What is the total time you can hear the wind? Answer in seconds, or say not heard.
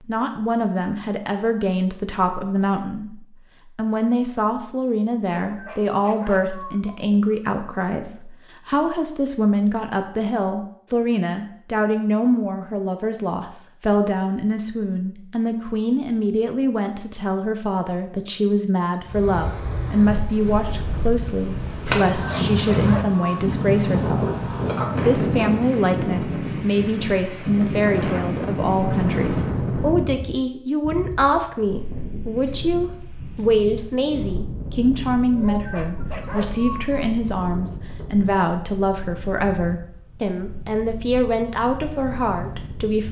24 s.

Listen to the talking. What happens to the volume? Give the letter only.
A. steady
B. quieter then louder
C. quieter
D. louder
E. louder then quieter
A.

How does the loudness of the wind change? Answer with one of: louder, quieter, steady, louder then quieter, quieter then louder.
quieter.